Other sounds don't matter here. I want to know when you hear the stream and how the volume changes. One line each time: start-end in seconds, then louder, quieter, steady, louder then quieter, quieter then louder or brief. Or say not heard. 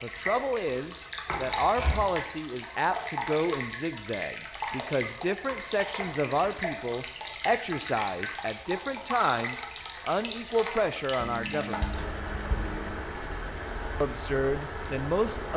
0.0-15.5 steady.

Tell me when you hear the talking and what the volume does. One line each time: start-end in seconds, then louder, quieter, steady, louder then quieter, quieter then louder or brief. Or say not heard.
0.0-12.0 steady
14.0-15.5 brief.